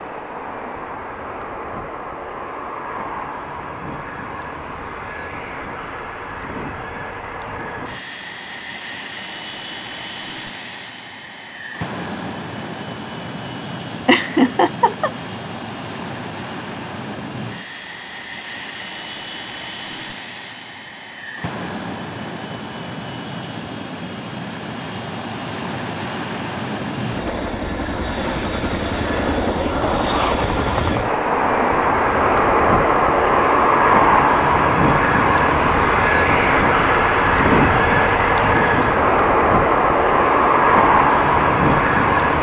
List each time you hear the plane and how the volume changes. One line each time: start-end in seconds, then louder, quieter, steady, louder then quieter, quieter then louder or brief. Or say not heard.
0.0-42.3 louder.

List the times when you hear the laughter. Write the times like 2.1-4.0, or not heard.
14.1-15.1.